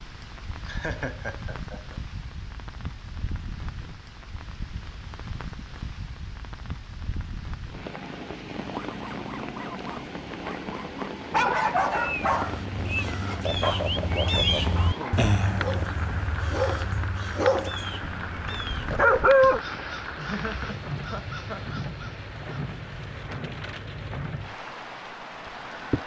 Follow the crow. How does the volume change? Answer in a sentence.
The volume of the crow goes down.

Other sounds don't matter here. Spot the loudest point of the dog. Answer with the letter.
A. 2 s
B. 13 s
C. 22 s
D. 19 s
D.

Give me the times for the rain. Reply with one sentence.
The rain can be heard from 0.0 to 26.0 s.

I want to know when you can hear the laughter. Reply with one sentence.
You can hear the laughter from 0.7 to 1.9 s, from 13.4 to 14.6 s and from 20.1 to 21.6 s.